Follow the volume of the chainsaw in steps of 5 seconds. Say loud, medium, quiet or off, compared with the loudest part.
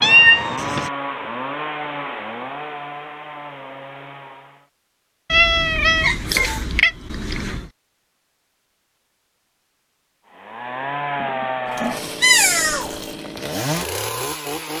loud, off, loud.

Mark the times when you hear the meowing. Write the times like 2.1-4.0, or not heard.
0.0-0.9, 5.3-7.7, 11.7-13.1.